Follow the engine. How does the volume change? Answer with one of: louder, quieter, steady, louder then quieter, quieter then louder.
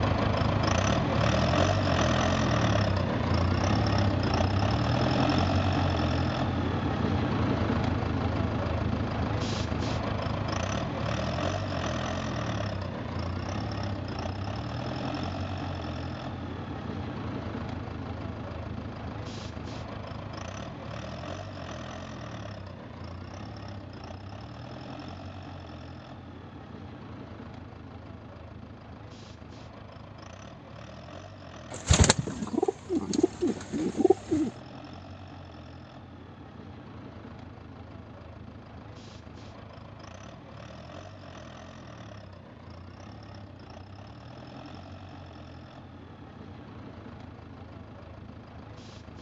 quieter.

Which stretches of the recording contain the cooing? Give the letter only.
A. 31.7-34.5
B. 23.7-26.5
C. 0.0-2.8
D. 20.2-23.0
A.